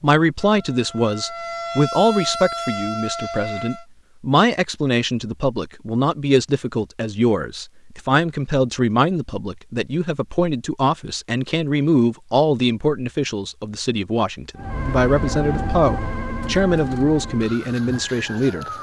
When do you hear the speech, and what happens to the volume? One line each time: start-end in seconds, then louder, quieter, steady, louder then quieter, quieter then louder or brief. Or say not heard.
0.0-18.6 steady.